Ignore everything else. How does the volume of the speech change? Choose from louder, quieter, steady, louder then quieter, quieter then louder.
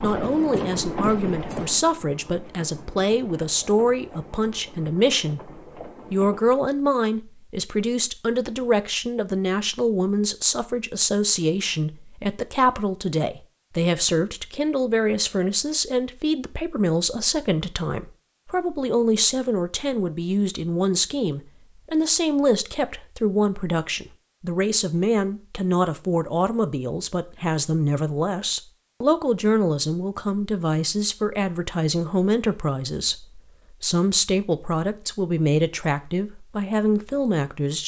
steady.